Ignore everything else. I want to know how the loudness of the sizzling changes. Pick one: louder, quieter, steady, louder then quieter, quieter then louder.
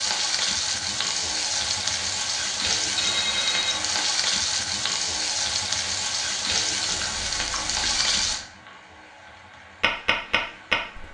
quieter.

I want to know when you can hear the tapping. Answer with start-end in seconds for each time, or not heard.
9.8-11.0.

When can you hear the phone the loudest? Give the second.
3 s.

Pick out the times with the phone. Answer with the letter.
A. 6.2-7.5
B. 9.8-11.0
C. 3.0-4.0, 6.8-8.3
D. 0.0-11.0
C.